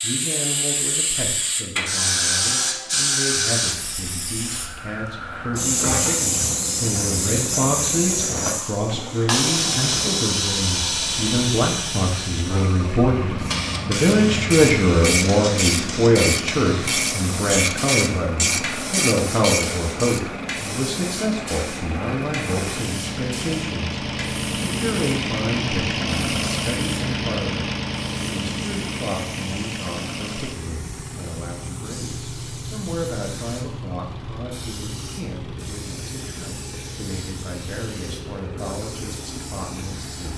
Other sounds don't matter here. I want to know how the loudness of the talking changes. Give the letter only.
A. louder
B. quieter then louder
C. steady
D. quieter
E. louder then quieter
E.